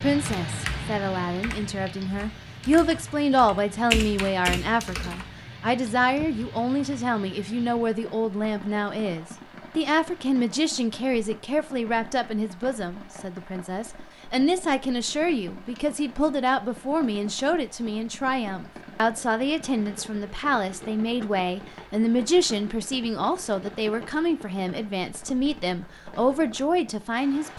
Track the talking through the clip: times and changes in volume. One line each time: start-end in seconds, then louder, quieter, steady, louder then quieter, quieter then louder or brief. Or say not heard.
0.0-27.5 steady.